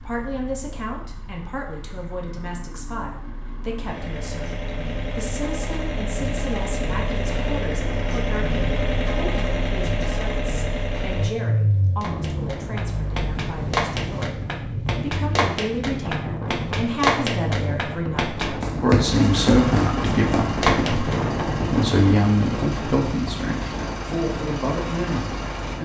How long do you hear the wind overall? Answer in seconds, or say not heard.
14 s.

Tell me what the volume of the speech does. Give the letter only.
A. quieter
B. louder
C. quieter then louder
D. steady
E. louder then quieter
B.